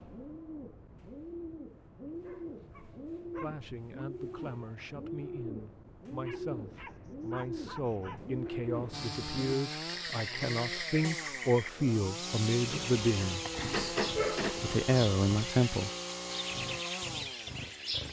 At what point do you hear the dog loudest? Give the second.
14 s.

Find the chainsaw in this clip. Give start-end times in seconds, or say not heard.
8.9-18.0.